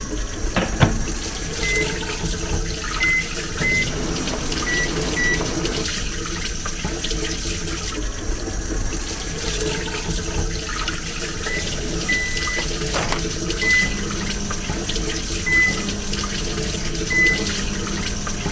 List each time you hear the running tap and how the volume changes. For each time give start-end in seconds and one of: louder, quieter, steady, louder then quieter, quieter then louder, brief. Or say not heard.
0.0-18.4 steady.